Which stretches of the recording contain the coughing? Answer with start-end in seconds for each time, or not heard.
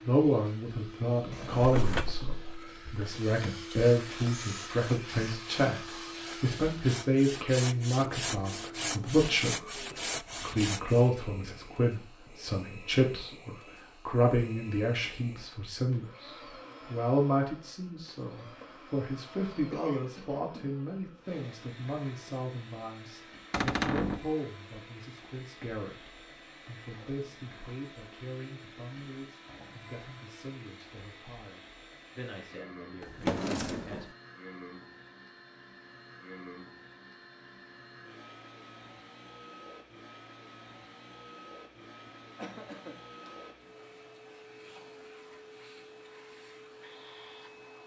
19.7-20.8, 42.0-43.5.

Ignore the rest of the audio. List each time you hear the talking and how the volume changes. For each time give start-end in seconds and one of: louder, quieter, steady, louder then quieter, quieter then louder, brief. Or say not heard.
0.1-34.0 quieter.